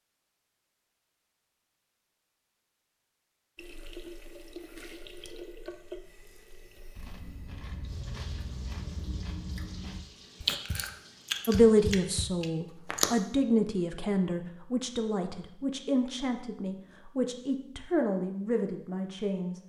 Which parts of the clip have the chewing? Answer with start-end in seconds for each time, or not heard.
7.0-13.1.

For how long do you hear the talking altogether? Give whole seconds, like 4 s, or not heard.
8 s.